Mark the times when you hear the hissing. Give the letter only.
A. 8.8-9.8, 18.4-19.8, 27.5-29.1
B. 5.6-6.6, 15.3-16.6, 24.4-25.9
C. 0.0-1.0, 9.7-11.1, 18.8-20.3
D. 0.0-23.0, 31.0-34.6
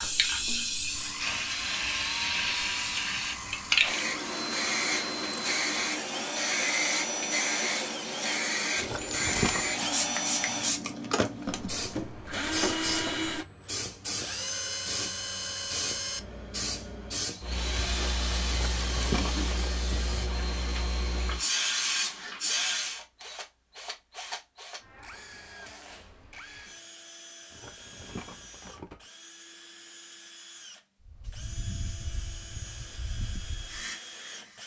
D.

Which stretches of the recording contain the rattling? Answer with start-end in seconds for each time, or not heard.
8.8-9.8, 18.4-19.8, 27.5-29.1.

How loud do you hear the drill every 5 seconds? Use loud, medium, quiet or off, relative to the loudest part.
medium, loud, loud, loud, medium, quiet, quiet.